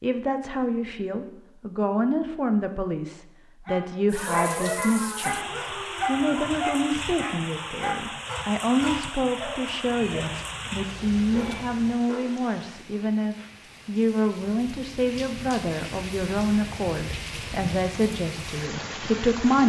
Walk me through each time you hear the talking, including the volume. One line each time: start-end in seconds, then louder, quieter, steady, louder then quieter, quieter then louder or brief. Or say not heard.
0.0-19.6 steady.